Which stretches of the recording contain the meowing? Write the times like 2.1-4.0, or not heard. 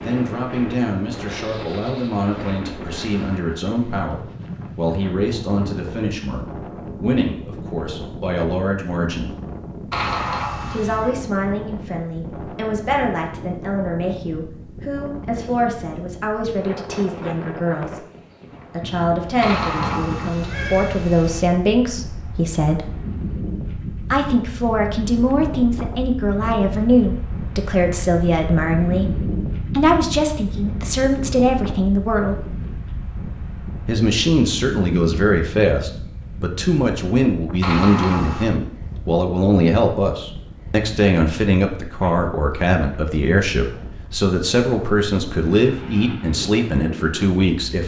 9.9-11.1, 19.4-21.4, 37.6-38.5.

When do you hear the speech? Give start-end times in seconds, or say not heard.
0.0-9.3, 10.7-18.1, 18.7-22.9, 24.1-32.5, 33.9-47.8.